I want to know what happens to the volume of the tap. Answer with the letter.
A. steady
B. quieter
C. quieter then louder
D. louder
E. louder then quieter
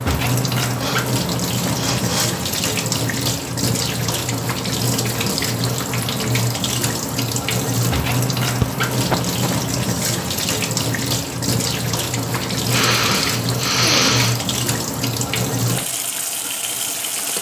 A.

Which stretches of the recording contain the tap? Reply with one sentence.
You can hear the tap from 0.0 to 17.3 s.